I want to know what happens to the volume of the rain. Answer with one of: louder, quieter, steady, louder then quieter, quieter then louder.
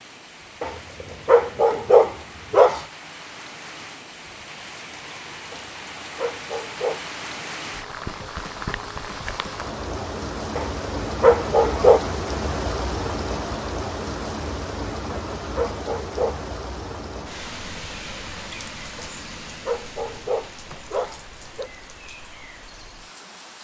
louder then quieter.